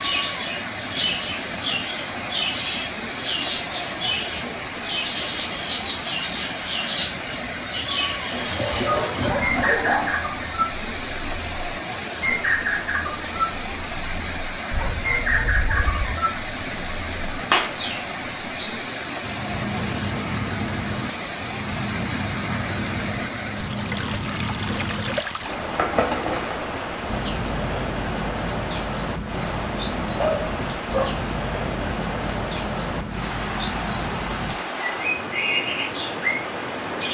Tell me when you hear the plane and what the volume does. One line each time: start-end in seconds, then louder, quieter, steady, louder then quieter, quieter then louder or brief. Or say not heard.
not heard.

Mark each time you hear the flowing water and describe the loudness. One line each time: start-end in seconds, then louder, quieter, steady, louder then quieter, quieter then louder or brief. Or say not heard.
0.0-37.1 steady.